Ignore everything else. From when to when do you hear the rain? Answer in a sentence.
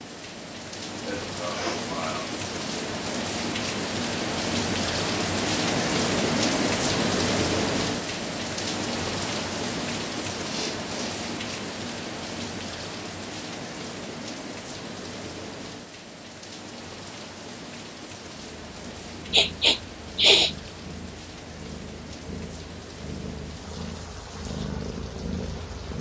You can hear the rain from 0.0 to 25.9 s.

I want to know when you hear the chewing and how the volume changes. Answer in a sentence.
The chewing can't be heard in this clip.